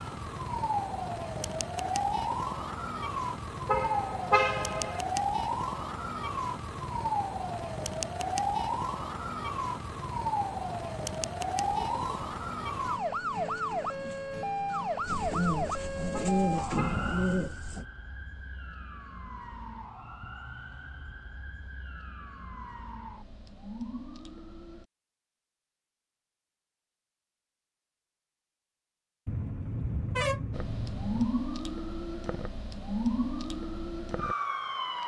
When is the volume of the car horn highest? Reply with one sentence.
The loudest moment of the car horn is at 4 seconds.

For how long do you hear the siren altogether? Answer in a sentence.
You can hear the siren for 29 seconds altogether.